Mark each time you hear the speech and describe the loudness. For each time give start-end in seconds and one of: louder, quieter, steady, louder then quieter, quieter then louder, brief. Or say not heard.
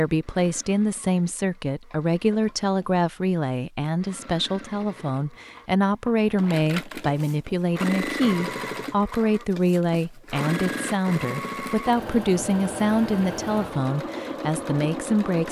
0.0-15.4 steady.